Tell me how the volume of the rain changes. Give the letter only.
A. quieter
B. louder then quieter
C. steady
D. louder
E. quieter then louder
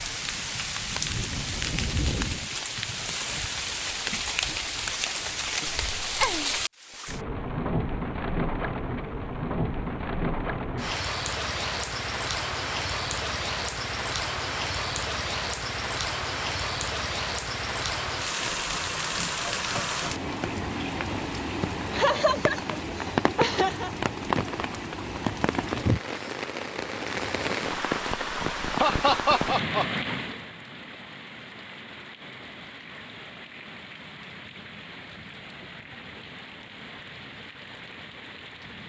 A.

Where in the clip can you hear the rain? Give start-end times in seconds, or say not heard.
0.0-38.8.